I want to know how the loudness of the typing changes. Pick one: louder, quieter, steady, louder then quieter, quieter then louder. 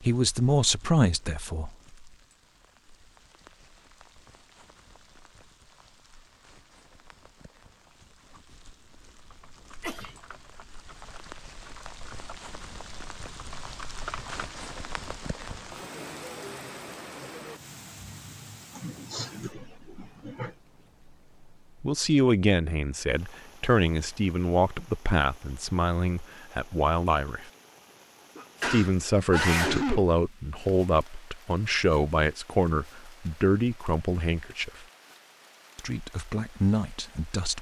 louder.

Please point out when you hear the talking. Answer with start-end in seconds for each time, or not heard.
0.0-1.8, 21.8-27.5, 28.6-34.9, 35.8-37.5.